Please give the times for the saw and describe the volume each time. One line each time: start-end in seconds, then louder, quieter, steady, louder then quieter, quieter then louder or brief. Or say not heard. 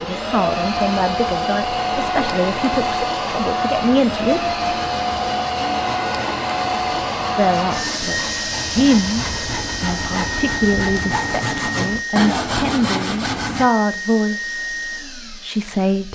4.1-13.7 louder.